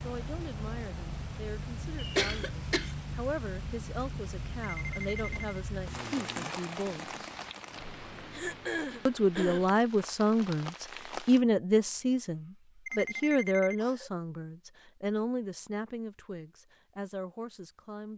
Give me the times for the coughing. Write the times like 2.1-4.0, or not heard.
1.9-3.0, 8.3-9.7, 12.9-14.1.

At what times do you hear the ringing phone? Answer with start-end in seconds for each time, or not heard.
4.6-5.5, 12.8-13.8.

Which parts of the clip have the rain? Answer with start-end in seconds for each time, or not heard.
0.0-11.4.